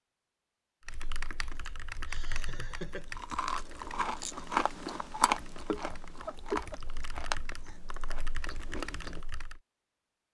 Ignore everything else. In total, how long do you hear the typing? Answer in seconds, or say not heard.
9 s.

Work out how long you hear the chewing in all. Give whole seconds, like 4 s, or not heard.
6 s.